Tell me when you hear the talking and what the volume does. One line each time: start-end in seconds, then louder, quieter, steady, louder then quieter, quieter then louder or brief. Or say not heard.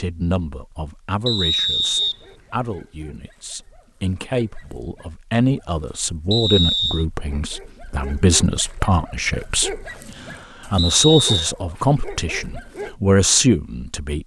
0.0-14.2 louder.